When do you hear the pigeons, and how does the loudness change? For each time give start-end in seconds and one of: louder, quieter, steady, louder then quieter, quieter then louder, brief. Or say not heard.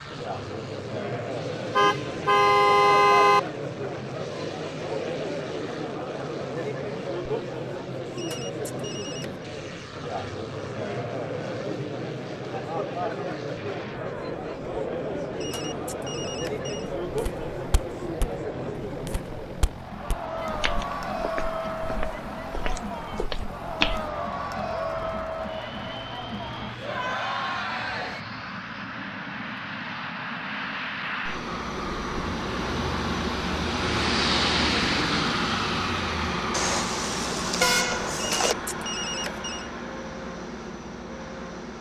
not heard.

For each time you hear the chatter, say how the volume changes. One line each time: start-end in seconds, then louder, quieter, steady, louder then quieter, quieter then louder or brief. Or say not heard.
0.0-28.2 steady.